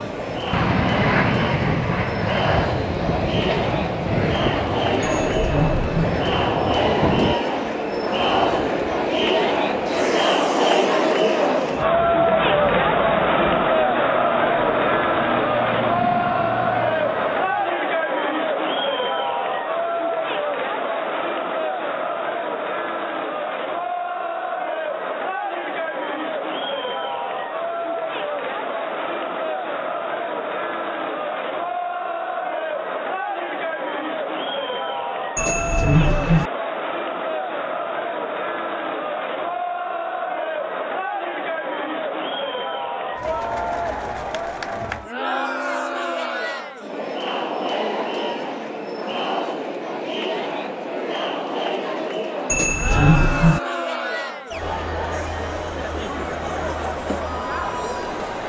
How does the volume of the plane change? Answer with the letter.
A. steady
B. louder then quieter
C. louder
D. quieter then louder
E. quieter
E.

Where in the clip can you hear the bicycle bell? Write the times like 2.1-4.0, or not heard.
5.0-6.2, 35.4-36.5, 52.5-53.6.